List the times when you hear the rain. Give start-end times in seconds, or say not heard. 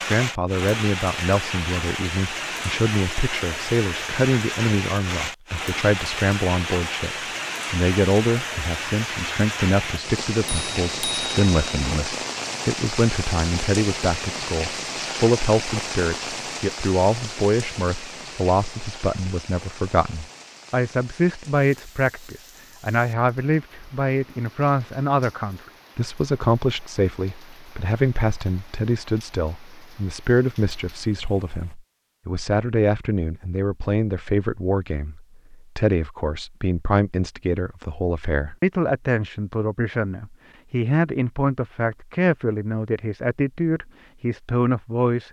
0.0-31.8.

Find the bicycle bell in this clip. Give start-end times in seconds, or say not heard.
10.4-11.9.